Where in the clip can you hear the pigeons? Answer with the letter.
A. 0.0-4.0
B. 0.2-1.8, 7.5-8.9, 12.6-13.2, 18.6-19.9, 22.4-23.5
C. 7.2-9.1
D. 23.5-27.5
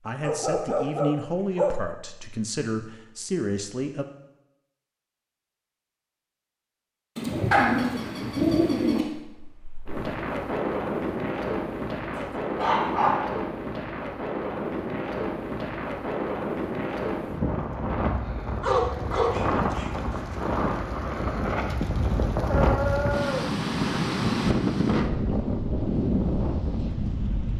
C.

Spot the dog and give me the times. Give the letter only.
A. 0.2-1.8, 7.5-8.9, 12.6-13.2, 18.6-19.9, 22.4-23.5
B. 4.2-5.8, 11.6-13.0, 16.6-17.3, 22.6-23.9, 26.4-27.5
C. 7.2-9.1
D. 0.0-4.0
A.